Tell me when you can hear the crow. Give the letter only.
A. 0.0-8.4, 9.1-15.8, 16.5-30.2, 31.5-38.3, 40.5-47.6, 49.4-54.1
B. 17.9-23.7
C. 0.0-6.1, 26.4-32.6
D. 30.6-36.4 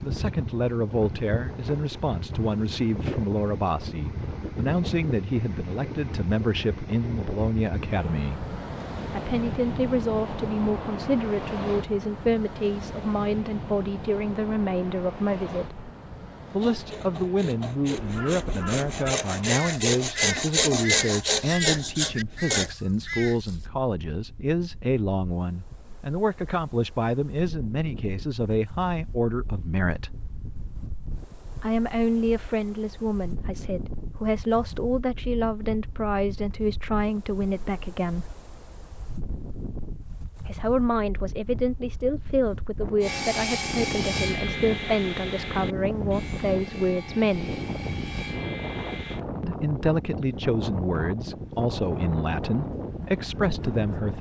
B.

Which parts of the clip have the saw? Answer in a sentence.
The saw can be heard from 16.6 to 22.7 s and from 43.0 to 49.2 s.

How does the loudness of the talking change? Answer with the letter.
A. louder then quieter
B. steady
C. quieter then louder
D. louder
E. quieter
B.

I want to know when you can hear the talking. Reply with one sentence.
The talking can be heard from 0.0 to 8.4 s, from 9.1 to 15.8 s, from 16.5 to 30.2 s, from 31.5 to 38.3 s, from 40.5 to 47.6 s and from 49.4 to 54.1 s.